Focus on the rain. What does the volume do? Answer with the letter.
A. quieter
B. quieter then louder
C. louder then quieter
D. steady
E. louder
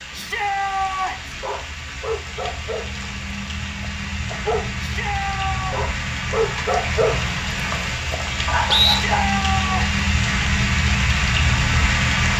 E.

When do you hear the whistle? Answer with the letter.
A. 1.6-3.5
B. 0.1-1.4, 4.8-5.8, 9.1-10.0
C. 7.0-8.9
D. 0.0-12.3
C.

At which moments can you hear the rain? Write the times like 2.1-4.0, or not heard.
0.0-12.3.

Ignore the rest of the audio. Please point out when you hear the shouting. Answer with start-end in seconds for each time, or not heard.
0.1-1.4, 4.8-5.8, 9.1-10.0.